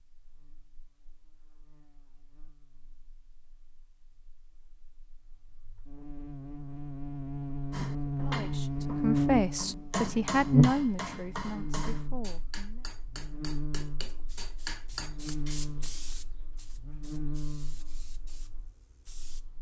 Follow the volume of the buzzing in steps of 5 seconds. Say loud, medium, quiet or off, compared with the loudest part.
quiet, loud, loud, medium.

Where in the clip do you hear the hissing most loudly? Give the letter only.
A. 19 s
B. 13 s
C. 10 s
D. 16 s
D.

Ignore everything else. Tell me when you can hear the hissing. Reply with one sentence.
The hissing can be heard from 14.1 to 19.5 s.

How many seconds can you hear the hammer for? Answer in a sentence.
You can hear the hammer for 8 seconds altogether.